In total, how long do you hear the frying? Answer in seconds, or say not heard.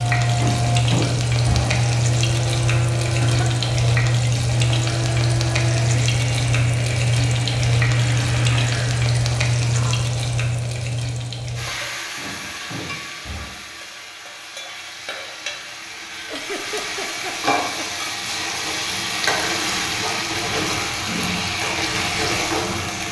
23 s.